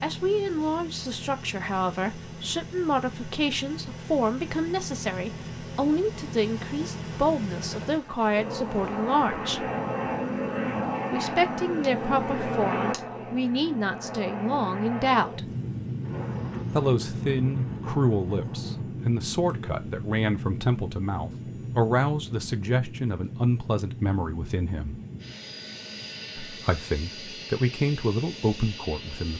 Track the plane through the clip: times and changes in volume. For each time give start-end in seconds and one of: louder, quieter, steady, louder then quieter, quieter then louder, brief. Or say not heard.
0.0-29.3 louder then quieter.